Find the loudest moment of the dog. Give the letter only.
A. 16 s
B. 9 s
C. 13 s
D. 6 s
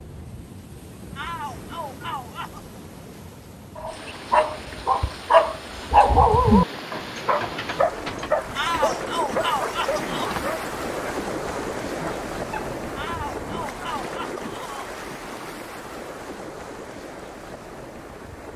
D.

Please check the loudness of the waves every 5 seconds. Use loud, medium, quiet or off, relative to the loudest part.
medium, loud, loud, medium.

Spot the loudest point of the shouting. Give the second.
9 s.